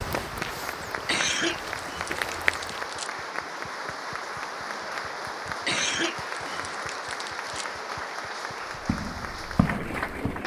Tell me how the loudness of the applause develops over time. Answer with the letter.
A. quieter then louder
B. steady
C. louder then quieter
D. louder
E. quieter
B.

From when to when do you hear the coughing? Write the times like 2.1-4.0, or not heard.
1.1-3.1, 5.7-7.7.